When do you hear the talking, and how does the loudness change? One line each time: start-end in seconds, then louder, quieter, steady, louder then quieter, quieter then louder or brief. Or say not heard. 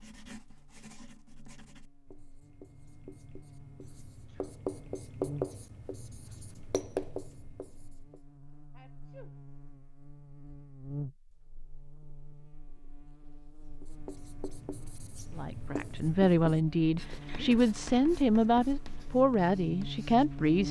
15.3-20.6 steady.